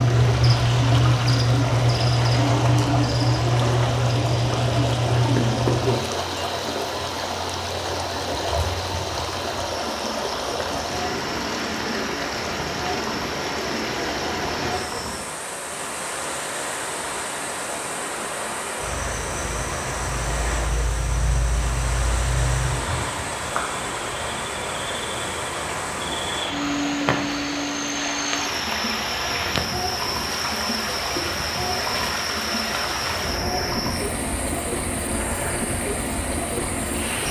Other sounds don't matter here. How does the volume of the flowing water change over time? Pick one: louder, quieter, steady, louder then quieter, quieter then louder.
steady.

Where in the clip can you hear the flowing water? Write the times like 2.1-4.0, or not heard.
0.0-37.2.